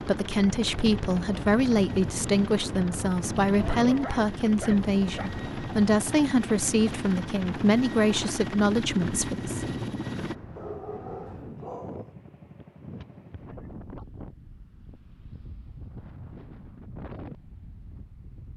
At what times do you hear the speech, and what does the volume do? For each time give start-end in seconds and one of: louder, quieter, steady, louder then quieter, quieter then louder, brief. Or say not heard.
0.0-9.7 steady.